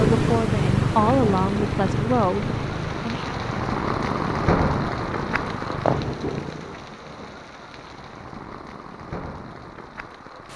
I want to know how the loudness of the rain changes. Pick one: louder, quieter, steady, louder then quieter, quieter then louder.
louder then quieter.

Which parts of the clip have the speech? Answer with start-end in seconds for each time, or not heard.
0.0-3.3.